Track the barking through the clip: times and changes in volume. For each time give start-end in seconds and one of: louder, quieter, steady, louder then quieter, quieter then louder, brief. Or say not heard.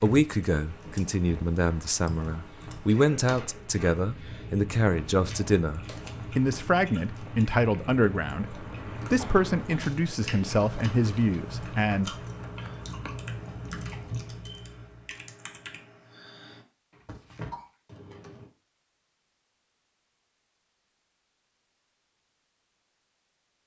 not heard.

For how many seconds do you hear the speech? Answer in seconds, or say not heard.
12 s.